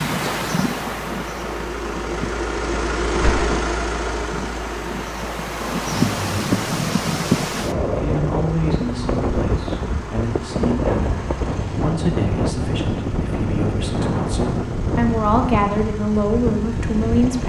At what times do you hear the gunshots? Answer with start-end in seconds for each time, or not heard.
3.2-3.7.